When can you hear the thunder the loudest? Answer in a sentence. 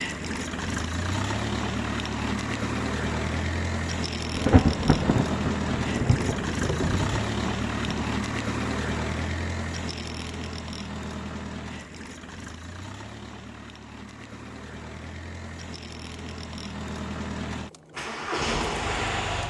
The loudest moment of the thunder is at 5 seconds.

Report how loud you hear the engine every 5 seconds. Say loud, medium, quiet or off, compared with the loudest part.
loud, loud, medium, loud.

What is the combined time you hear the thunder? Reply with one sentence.
The thunder can be heard for 4 seconds in total.